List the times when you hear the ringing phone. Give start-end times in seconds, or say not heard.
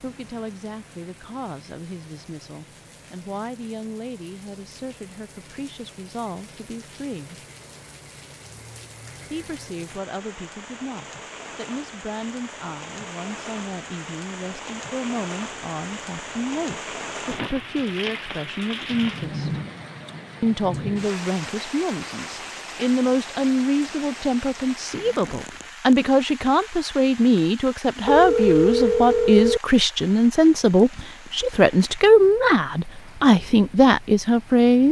28.1-29.6.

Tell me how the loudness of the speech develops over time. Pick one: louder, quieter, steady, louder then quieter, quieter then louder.
louder.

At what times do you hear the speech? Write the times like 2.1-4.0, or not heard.
0.0-7.4, 9.3-19.6, 20.4-34.8.